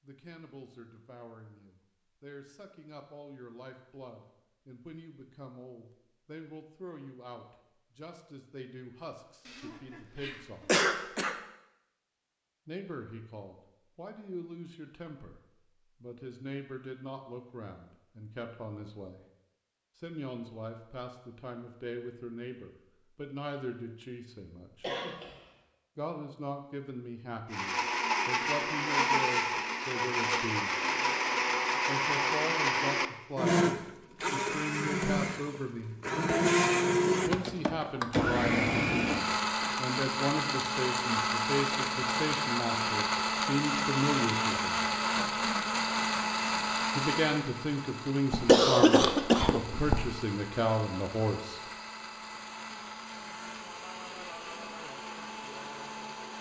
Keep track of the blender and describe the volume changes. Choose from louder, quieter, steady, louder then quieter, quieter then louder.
quieter.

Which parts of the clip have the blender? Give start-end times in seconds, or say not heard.
27.5-56.3.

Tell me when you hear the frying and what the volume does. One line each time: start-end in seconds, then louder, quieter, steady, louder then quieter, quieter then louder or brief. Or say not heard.
not heard.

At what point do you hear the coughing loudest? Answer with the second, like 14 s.
49 s.